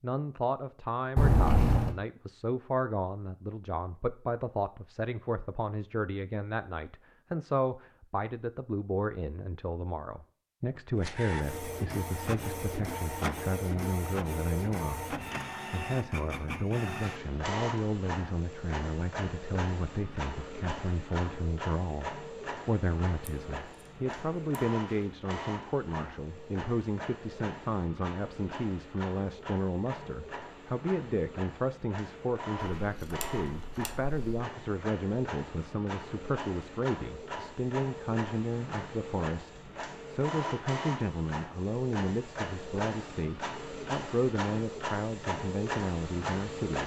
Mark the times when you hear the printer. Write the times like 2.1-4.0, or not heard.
11.0-46.8.